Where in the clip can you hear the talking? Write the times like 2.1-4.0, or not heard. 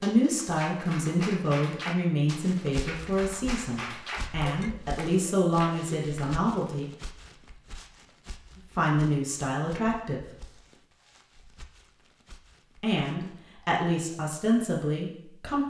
0.0-6.8, 8.8-10.2, 12.8-15.6.